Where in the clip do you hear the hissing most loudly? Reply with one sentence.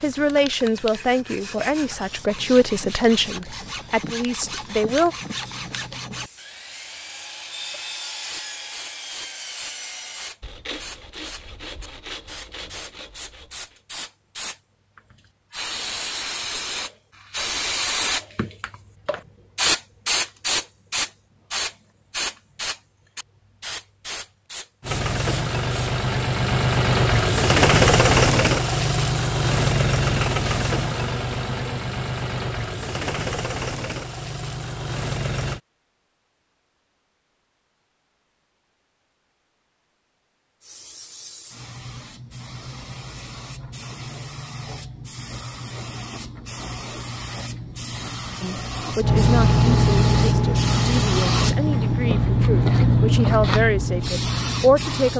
The loudest moment of the hissing is at 53 seconds.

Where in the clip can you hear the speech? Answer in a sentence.
The speech can be heard from 0.0 to 5.2 s and from 48.4 to 55.1 s.